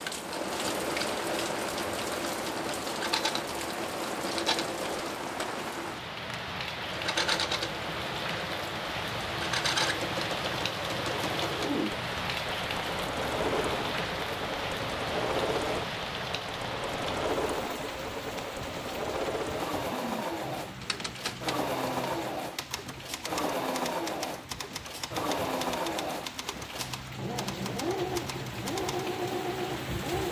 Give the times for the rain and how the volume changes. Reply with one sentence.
The rain can be heard from 0.0 to 30.2 s, getting quieter.